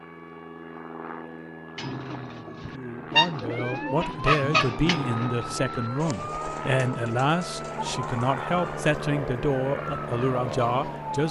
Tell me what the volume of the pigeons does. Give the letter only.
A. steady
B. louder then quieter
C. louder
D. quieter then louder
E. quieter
E.